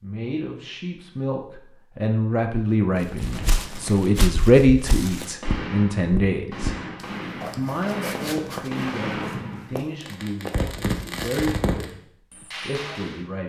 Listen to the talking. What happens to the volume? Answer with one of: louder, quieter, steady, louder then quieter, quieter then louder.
louder then quieter.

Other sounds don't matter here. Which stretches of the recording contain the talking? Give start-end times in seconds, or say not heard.
0.0-6.8, 7.5-13.4.